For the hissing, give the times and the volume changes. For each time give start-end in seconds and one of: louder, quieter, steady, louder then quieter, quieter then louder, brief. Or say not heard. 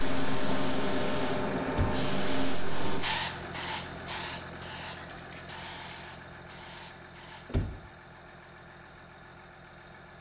0.0-7.5 quieter.